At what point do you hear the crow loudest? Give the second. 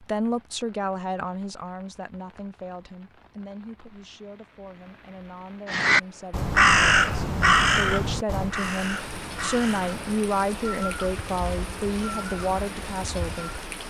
7 s.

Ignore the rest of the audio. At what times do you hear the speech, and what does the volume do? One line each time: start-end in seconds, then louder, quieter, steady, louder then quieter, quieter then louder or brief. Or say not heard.
0.0-13.7 quieter then louder.